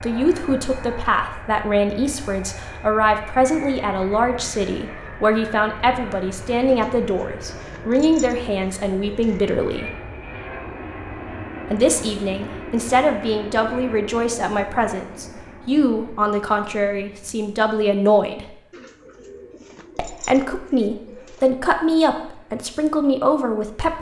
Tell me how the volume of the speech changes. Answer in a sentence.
The volume of the speech stays about the same.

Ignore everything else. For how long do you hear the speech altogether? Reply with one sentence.
The speech can be heard for 21 seconds in total.